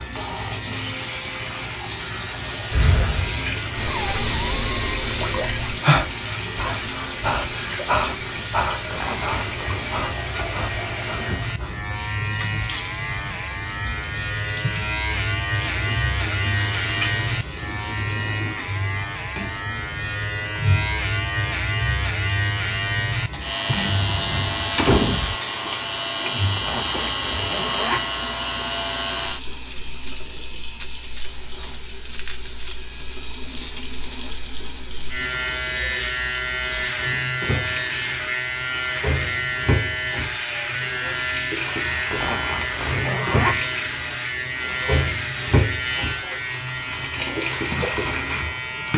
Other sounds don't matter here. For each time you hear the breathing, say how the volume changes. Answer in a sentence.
You can hear the breathing from 2.7 to 11.8 s, getting quieter.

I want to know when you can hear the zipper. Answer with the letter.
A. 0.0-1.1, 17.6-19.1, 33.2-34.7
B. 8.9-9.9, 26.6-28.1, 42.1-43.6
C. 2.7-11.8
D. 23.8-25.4
B.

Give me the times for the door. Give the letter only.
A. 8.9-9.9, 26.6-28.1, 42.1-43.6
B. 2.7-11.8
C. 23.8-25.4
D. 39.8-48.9
C.